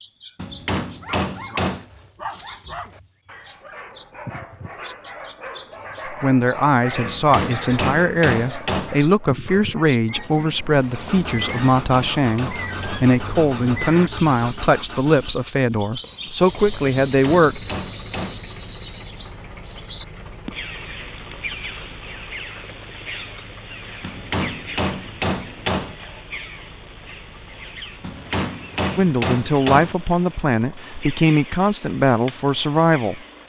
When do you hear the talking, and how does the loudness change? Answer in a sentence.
The talking can be heard from 6.0 to 17.6 s, at a steady volume; and from 28.9 to 33.2 s, at a steady volume.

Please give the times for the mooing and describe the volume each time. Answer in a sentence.
You can't hear the mooing here.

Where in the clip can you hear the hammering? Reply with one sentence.
You can hear the hammering from 0.3 to 1.9 s, from 7.0 to 8.9 s, from 11.3 to 13.1 s, from 17.1 to 18.4 s, from 24.0 to 25.9 s and from 28.0 to 29.9 s.